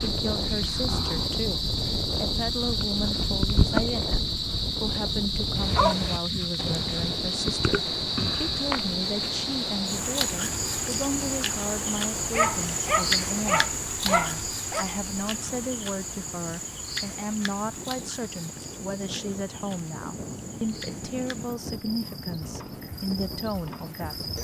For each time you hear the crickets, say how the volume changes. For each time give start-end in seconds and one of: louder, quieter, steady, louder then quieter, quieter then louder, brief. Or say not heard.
0.0-24.3 quieter.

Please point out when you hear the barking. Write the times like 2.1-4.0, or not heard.
5.5-7.0, 12.3-14.8.